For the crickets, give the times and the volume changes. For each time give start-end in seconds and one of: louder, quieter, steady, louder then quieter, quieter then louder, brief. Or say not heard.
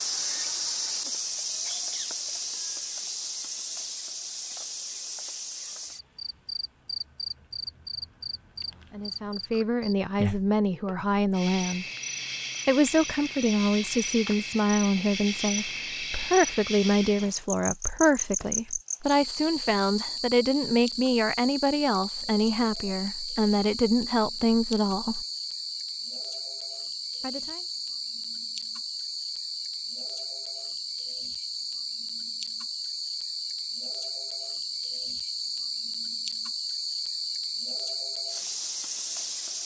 0.0-39.6 steady.